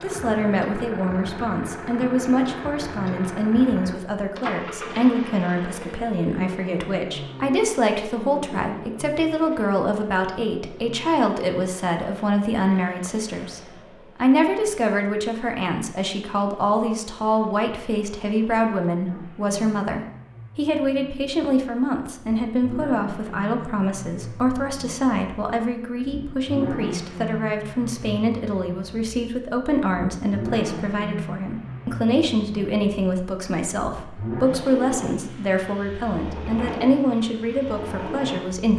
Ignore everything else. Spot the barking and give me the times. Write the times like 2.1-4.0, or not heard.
not heard.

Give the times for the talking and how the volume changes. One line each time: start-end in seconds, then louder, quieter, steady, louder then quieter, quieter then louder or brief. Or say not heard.
0.0-38.7 steady.